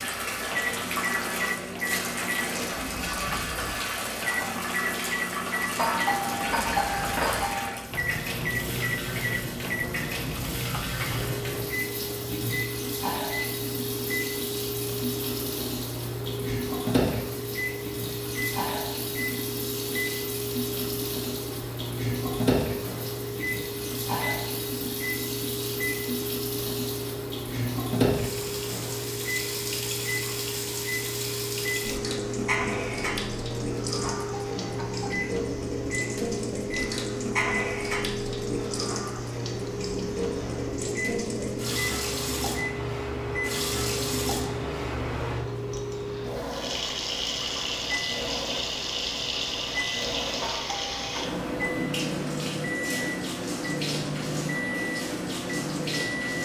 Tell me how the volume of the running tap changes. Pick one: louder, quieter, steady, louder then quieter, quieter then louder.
steady.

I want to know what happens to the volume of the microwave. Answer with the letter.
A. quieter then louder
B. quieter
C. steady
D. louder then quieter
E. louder
C.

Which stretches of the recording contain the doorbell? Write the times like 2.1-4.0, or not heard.
5.8-7.7, 34.0-35.3, 50.4-51.4.